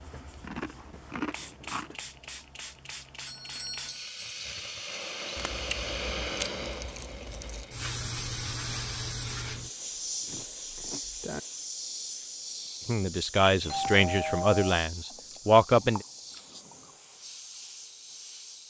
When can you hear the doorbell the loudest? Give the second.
14 s.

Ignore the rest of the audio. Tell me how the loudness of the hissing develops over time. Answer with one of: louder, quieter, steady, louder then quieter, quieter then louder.
louder then quieter.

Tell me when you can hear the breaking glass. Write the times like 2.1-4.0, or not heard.
not heard.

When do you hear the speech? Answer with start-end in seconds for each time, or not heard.
12.8-16.1.